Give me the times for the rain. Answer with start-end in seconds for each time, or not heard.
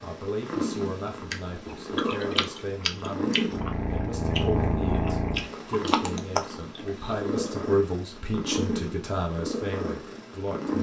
not heard.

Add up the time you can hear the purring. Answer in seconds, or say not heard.
11 s.